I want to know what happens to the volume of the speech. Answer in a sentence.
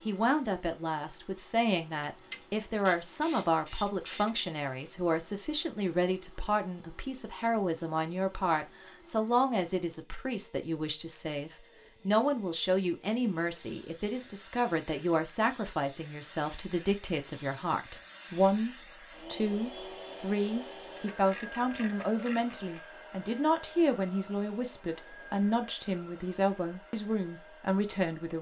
The volume of the speech stays about the same.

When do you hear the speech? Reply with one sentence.
You can hear the speech from 0.1 to 28.3 s.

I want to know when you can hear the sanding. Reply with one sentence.
The sanding can't be heard in this clip.